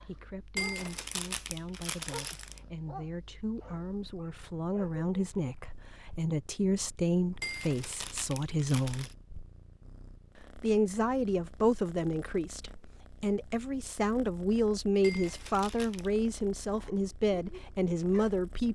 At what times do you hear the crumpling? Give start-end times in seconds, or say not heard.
0.6-2.6, 7.4-9.2, 15.0-16.1.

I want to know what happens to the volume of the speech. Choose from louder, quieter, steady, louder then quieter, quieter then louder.
louder.